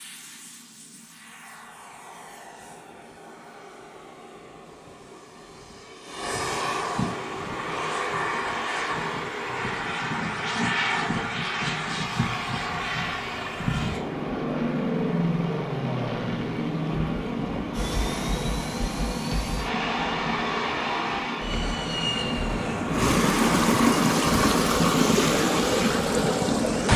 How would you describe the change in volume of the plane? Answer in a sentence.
The volume of the plane goes up.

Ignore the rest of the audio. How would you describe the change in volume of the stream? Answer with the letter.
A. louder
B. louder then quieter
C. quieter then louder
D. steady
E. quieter
A.